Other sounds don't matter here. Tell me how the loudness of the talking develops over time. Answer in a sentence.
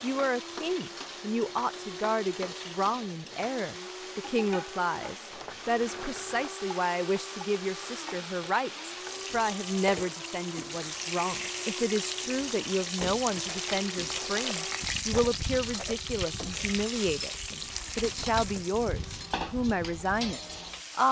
The loudness of the talking stays about the same.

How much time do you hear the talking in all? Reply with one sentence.
You can hear the talking for 21 seconds altogether.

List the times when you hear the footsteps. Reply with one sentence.
You can't hear the footsteps here.